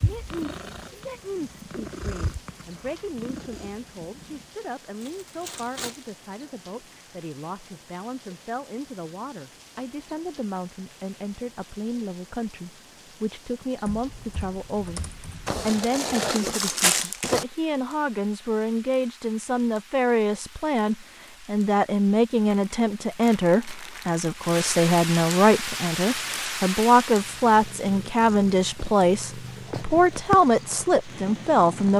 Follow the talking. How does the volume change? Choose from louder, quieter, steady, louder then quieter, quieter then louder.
louder.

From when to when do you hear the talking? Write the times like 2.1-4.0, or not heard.
0.0-15.1, 15.7-31.9.